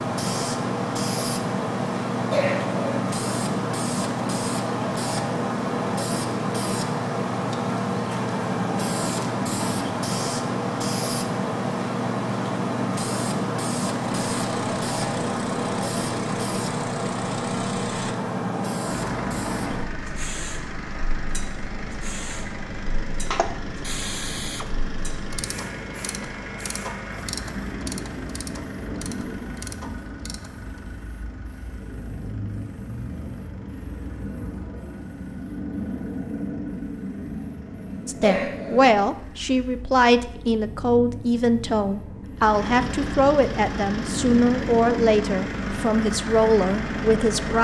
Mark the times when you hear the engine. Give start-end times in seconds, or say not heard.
14.2-39.7, 42.4-47.5.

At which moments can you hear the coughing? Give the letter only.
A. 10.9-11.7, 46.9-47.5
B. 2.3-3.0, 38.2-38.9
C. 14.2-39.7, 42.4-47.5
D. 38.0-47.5
B.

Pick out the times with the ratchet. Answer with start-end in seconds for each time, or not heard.
23.3-30.8.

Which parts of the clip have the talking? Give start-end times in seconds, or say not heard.
38.0-47.5.